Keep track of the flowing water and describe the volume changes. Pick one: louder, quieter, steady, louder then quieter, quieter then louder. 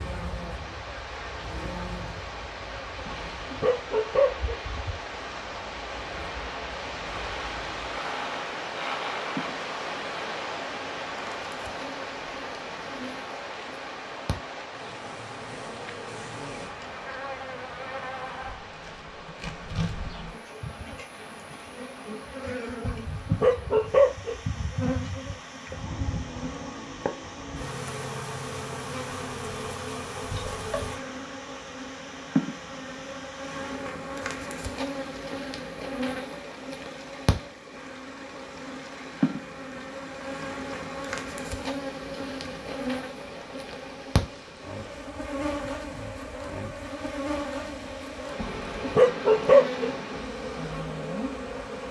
quieter.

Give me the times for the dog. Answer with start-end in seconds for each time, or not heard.
3.0-4.6, 22.9-24.4, 48.6-49.9.